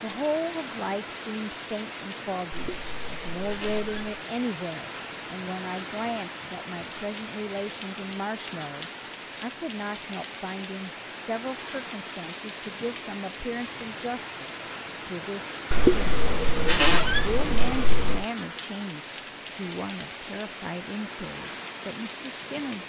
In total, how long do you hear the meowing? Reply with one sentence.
You can hear the meowing for 4 seconds altogether.